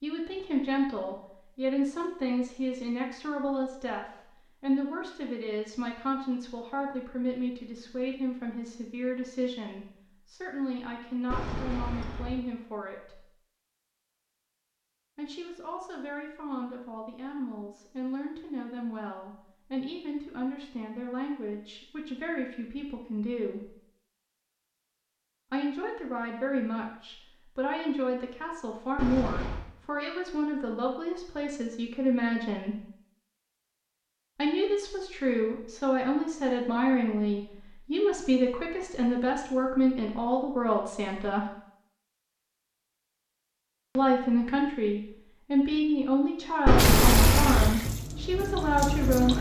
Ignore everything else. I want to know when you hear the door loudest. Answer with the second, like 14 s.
47 s.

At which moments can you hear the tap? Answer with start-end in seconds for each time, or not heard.
46.8-49.3.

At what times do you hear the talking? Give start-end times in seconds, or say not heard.
0.0-13.2, 15.2-23.7, 25.5-32.8, 34.4-41.5, 44.0-49.3.